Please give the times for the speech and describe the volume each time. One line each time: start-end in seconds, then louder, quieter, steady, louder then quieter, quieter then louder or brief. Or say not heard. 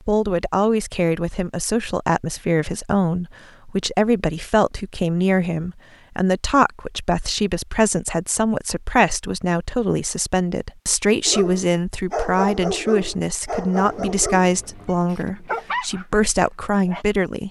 0.1-17.4 steady.